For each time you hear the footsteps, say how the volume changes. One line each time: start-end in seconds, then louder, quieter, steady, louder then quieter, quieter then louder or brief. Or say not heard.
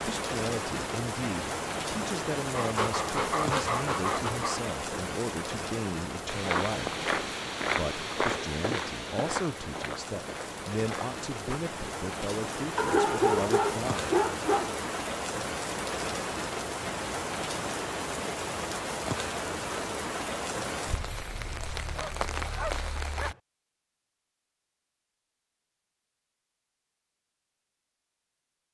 6.2-11.6 quieter.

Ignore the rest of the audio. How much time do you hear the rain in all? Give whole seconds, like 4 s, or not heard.
23 s.